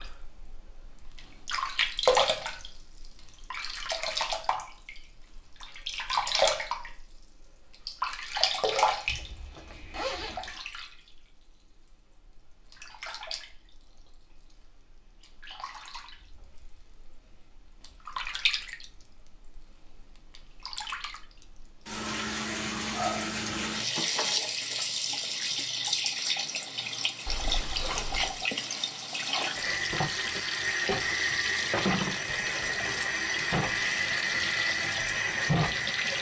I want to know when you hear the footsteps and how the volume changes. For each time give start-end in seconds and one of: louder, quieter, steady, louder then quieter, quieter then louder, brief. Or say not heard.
not heard.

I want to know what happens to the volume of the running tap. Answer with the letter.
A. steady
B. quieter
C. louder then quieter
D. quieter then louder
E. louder
D.